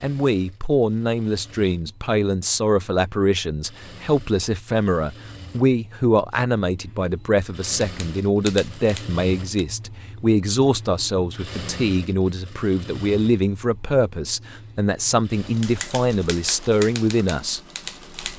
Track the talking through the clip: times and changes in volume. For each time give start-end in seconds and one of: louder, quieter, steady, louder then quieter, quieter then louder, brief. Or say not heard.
0.0-17.6 steady.